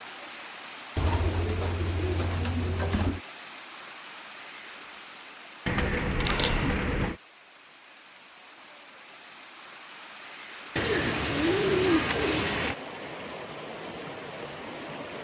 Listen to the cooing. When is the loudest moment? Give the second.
12 s.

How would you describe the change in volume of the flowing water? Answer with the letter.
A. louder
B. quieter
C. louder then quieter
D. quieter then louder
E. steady
D.